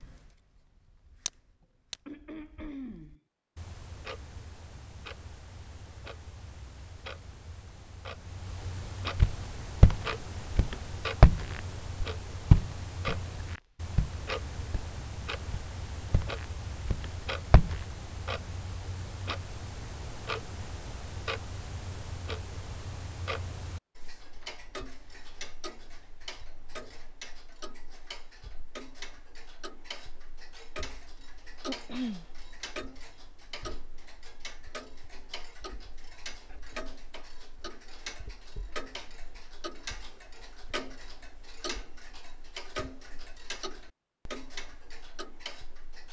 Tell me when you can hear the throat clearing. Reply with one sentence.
You can hear the throat clearing from 1.6 to 3.2 s and from 31.6 to 32.2 s.